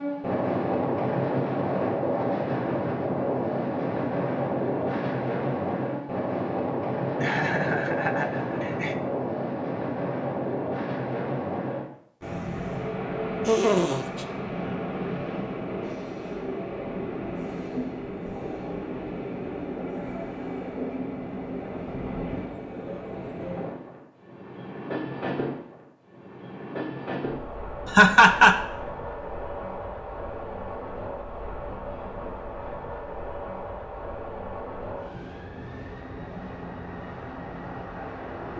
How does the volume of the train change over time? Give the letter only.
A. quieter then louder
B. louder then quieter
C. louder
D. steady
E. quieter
E.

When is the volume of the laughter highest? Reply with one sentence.
The loudest moment of the laughter is at 28 seconds.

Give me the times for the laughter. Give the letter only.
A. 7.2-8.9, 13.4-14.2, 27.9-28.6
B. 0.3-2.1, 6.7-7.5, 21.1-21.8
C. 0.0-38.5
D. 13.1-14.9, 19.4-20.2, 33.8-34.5
A.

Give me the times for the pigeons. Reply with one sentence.
The pigeons can't be heard in this clip.